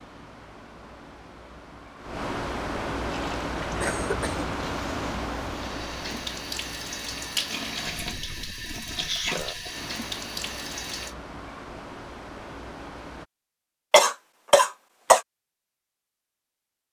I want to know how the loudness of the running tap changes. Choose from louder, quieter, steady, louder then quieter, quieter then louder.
louder.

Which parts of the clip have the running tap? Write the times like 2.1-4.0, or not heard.
3.0-11.2.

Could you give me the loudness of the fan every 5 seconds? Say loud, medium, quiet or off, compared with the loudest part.
loud, medium, medium, off.